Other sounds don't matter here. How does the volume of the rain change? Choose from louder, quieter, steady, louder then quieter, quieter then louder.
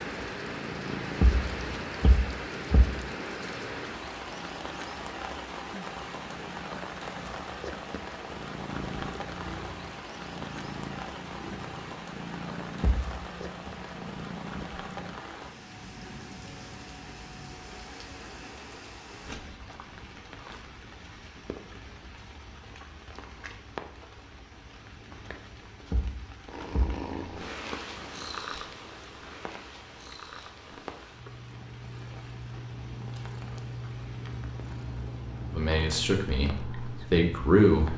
quieter.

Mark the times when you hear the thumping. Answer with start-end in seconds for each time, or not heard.
1.2-3.0, 12.8-13.7, 25.9-27.0.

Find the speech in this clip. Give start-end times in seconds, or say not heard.
35.5-37.9.